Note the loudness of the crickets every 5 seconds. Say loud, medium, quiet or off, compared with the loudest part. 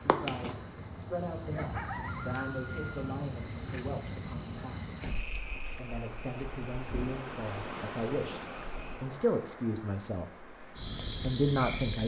loud, medium, loud.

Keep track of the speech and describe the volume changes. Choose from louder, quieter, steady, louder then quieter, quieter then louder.
louder.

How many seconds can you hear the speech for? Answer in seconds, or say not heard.
11 s.